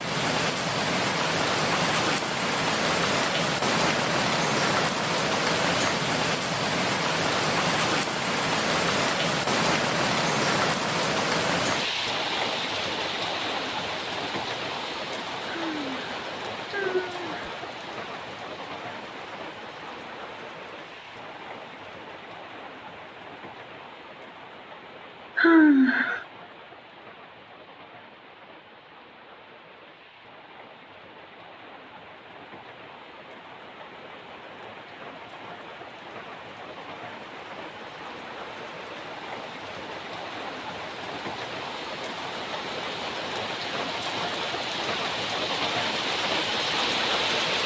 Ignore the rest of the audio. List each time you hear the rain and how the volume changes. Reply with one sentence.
You can hear the rain from 0.0 to 47.6 s, getting quieter then louder.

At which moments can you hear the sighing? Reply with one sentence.
You can hear the sighing from 15.4 to 17.5 s and from 25.4 to 26.2 s.